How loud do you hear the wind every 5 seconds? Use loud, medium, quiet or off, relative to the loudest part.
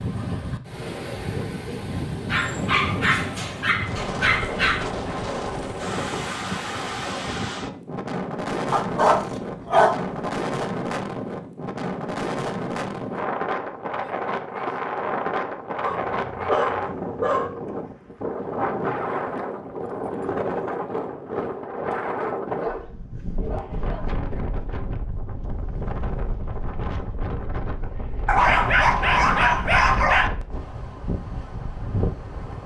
loud, loud, loud, loud, loud, medium, medium.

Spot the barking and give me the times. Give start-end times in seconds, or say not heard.
2.3-4.9, 8.7-10.3, 15.8-17.6, 22.6-24.2, 28.2-30.3.